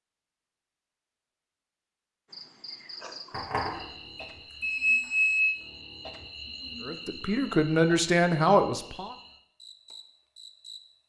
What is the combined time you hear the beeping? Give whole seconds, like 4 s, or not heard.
2 s.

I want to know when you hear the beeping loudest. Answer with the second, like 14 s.
5 s.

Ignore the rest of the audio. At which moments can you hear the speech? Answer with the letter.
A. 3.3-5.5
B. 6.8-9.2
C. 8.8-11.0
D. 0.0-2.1
B.